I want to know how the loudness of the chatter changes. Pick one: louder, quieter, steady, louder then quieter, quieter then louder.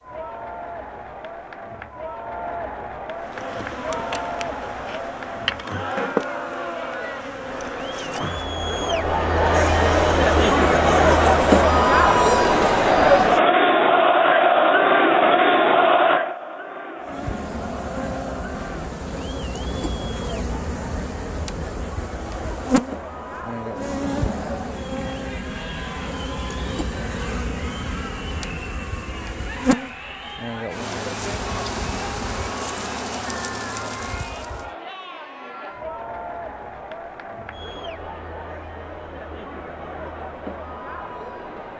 louder then quieter.